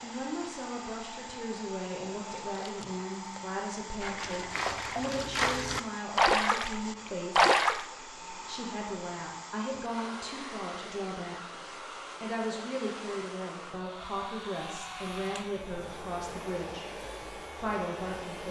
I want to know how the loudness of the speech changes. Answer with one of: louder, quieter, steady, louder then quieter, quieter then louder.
steady.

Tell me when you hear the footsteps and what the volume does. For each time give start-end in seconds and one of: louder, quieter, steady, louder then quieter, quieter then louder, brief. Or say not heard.
not heard.